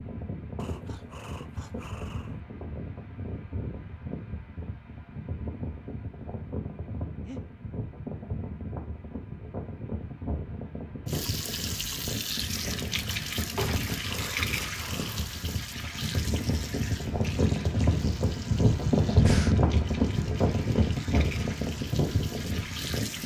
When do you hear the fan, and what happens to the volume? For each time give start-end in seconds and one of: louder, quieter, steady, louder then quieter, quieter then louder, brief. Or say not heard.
0.0-23.2 louder.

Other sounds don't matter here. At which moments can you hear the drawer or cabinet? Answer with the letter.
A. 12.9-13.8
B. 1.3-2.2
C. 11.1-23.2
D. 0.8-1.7
A.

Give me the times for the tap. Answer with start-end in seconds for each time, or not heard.
11.1-23.2.